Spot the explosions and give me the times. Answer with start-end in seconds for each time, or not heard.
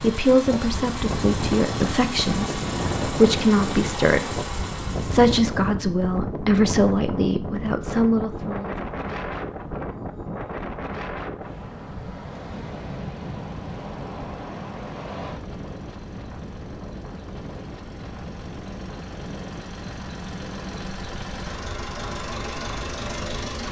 not heard.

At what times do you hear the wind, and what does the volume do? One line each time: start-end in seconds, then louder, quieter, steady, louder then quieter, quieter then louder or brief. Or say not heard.
0.0-23.6 quieter.